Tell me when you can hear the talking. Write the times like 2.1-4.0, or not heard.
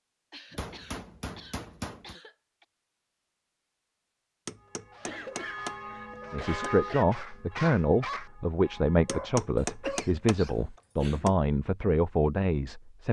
6.3-13.0.